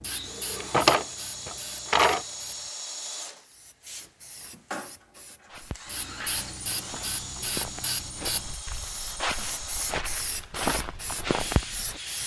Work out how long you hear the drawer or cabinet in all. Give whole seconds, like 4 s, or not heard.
2 s.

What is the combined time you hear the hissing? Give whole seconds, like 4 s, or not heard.
12 s.